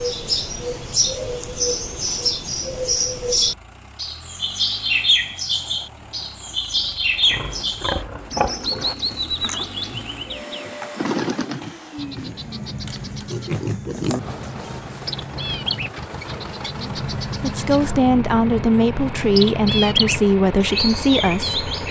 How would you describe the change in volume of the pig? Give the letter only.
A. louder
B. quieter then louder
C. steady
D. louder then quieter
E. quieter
B.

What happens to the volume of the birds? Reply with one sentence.
The volume of the birds goes down, then up.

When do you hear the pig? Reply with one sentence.
You can hear the pig from 7.2 to 14.5 s.